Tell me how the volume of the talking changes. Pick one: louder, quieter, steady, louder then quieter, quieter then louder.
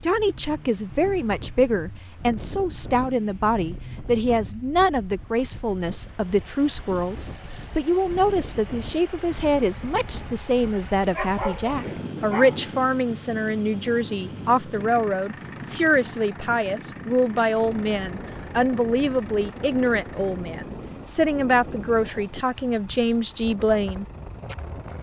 steady.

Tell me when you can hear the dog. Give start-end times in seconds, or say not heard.
11.1-12.8.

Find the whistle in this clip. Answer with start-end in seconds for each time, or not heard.
not heard.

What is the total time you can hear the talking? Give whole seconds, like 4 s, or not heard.
24 s.